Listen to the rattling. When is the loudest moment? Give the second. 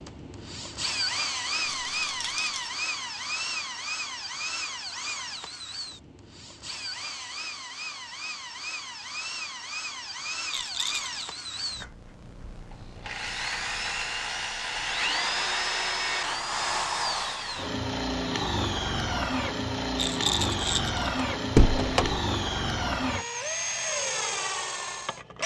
20 s.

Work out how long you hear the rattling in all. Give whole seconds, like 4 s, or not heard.
3 s.